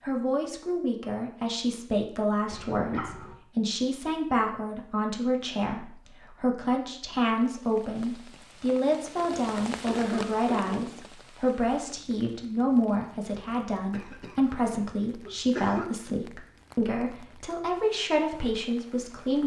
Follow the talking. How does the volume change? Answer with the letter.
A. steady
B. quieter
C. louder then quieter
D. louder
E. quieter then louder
A.